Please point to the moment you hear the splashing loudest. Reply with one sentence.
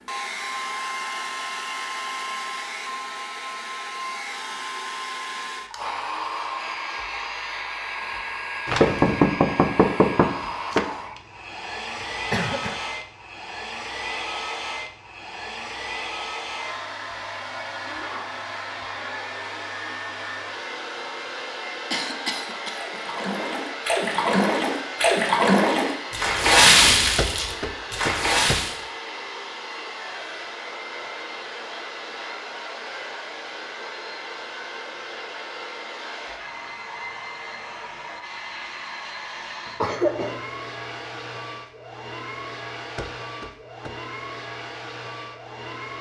The loudest moment of the splashing is at 27 seconds.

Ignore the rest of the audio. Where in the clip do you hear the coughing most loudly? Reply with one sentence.
The loudest moment of the coughing is at 40 seconds.